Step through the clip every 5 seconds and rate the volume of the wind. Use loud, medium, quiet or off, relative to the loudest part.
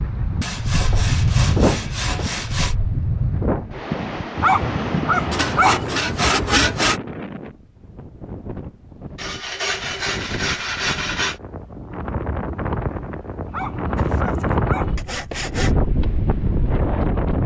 loud, medium, loud, loud.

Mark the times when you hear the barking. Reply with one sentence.
The barking can be heard from 4.3 to 5.8 s and from 13.4 to 14.9 s.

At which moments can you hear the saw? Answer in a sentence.
You can hear the saw from 0.4 to 2.8 s, from 5.3 to 7.0 s, from 9.2 to 11.4 s and from 13.9 to 15.8 s.